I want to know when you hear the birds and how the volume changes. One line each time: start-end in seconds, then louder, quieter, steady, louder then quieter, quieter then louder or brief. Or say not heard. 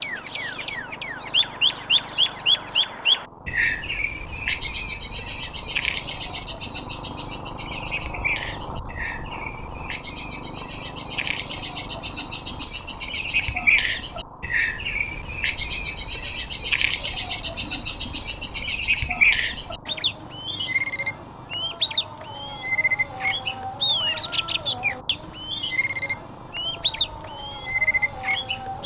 0.0-28.8 quieter then louder.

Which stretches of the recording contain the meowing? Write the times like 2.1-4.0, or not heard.
not heard.